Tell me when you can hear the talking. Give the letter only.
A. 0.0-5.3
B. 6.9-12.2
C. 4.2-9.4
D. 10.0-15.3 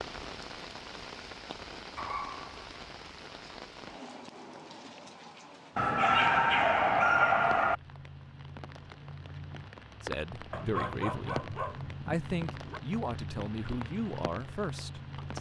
D.